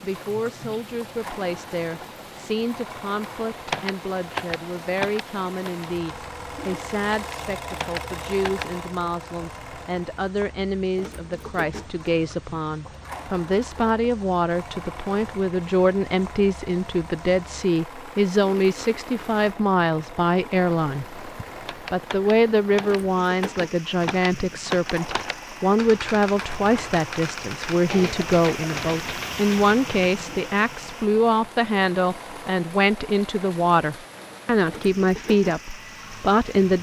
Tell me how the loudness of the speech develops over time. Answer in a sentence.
The loudness of the speech goes up.